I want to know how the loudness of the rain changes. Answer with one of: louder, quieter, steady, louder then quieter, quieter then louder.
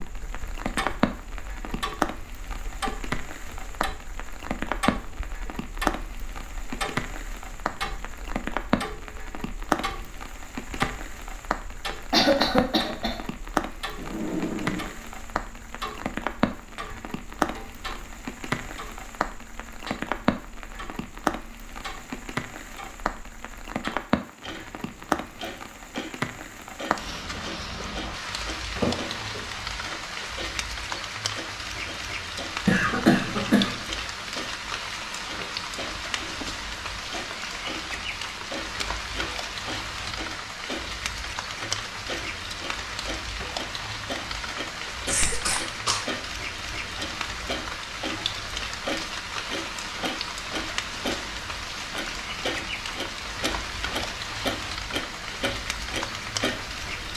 steady.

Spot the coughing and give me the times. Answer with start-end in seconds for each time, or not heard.
12.1-13.2, 32.6-33.8, 45.0-46.0.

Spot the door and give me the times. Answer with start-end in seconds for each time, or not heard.
13.9-14.9, 28.8-29.4.